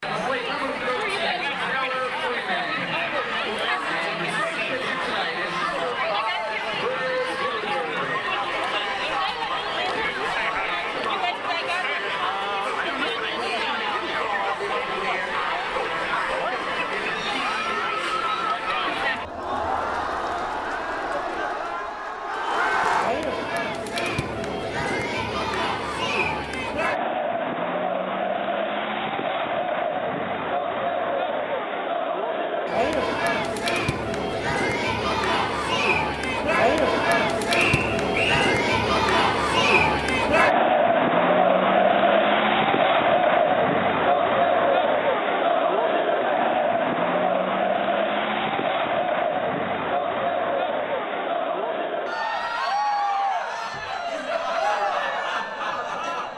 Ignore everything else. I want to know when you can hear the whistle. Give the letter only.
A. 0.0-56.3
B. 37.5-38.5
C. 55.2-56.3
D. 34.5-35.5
B.